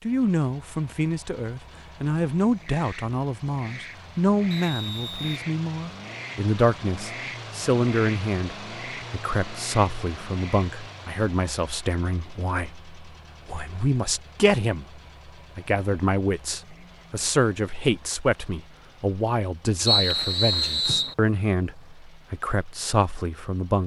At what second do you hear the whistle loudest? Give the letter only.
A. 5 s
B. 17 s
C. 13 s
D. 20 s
D.